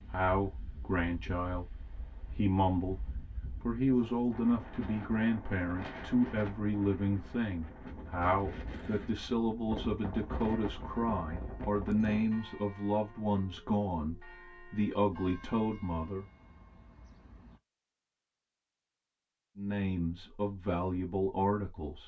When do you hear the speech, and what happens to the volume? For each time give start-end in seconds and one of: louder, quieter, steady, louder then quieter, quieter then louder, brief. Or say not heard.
0.0-16.2 steady
19.6-22.0 brief.